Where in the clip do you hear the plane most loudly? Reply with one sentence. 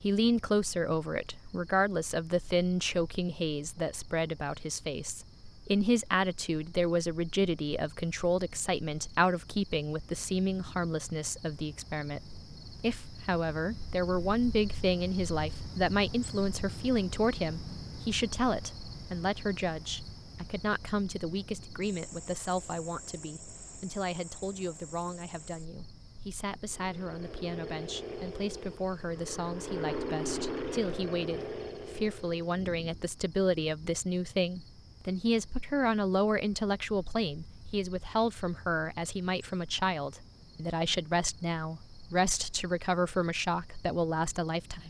The loudest moment of the plane is at 30 seconds.